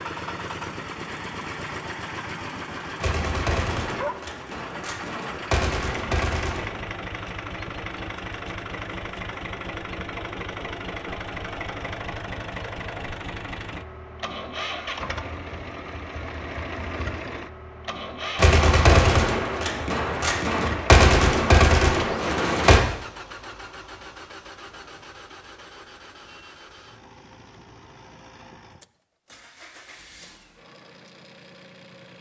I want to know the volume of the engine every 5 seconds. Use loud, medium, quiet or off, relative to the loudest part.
loud, loud, loud, loud, loud, quiet, quiet.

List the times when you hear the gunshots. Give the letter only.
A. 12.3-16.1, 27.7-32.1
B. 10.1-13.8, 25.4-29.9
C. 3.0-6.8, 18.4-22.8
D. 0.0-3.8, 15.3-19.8
C.